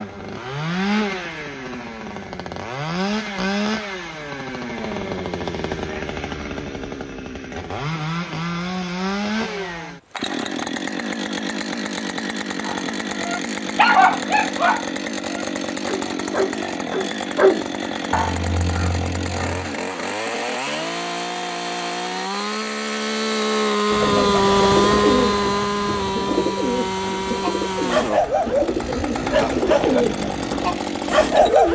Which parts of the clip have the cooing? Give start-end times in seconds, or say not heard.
23.9-31.7.